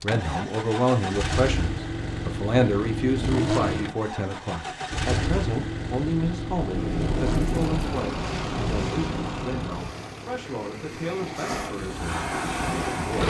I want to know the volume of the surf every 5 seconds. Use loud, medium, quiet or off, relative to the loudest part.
off, loud, loud.